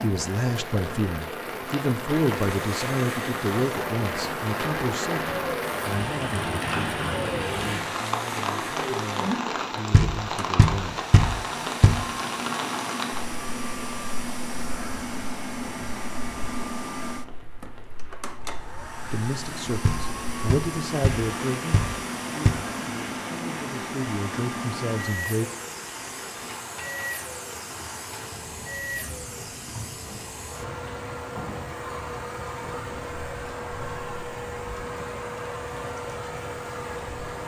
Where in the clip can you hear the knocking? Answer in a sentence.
You can hear the knocking from 9.9 to 12.0 s and from 19.9 to 22.5 s.